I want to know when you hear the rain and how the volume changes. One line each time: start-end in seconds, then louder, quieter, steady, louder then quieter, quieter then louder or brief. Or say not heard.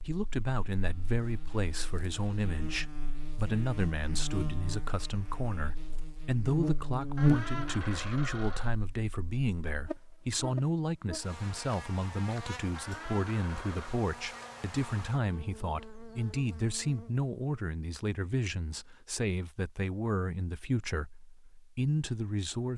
not heard.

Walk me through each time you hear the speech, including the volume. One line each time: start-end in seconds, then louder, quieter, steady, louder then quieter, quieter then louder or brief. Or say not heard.
0.0-22.7 steady.